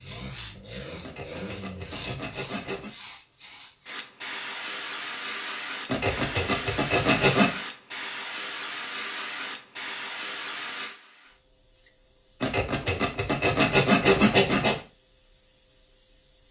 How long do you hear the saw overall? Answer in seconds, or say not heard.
6 s.